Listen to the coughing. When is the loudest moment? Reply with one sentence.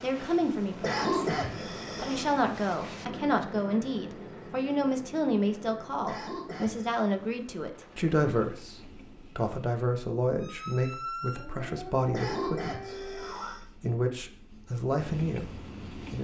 The volume of the coughing peaks at 1 second.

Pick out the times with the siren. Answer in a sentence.
The siren can be heard from 10.3 to 13.6 s.